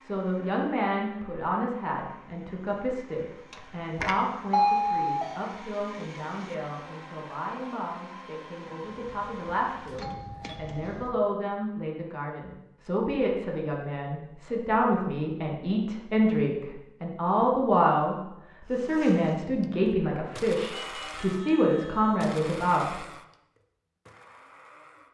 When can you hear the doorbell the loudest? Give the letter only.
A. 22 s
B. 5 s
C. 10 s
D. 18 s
B.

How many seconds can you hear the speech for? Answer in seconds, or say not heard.
23 s.